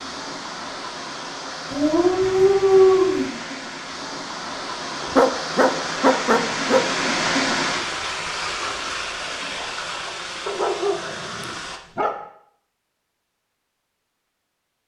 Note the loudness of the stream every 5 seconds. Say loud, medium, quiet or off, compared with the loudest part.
medium, loud, medium.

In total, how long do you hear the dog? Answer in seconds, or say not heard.
5 s.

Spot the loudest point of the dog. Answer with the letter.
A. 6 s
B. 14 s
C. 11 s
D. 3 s
D.